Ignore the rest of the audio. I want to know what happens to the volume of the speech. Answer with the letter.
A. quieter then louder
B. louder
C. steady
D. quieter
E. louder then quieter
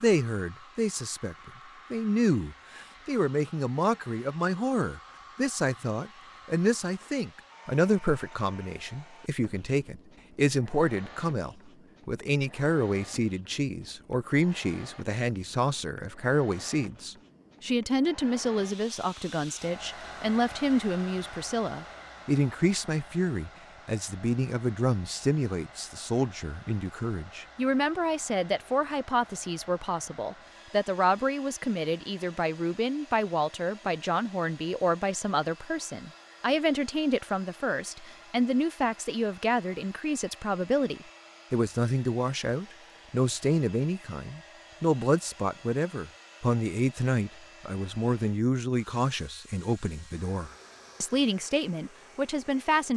C.